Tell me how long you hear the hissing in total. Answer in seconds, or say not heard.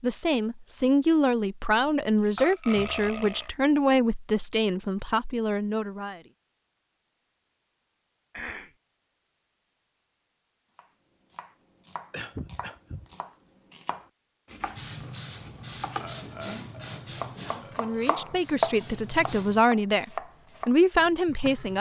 5 s.